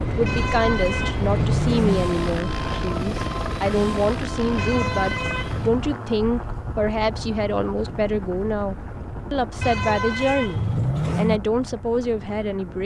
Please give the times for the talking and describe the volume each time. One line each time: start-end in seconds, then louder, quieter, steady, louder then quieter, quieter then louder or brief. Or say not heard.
0.1-12.8 steady.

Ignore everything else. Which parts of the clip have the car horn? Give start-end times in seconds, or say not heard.
0.2-2.0, 4.5-5.8, 9.6-11.4.